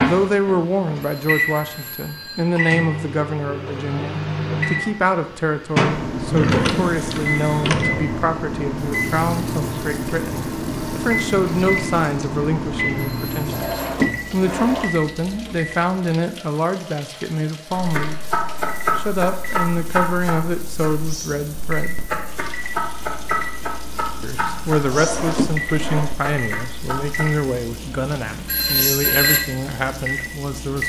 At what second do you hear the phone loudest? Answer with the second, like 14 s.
29 s.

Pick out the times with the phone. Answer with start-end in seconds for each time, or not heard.
1.0-2.5, 13.0-13.9, 28.4-29.4.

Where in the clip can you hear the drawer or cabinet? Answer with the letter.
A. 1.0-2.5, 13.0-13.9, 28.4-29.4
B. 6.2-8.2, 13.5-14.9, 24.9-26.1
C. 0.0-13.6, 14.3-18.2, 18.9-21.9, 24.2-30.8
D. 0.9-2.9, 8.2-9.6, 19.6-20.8
B.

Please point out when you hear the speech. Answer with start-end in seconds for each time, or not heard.
0.0-13.6, 14.3-18.2, 18.9-21.9, 24.2-30.8.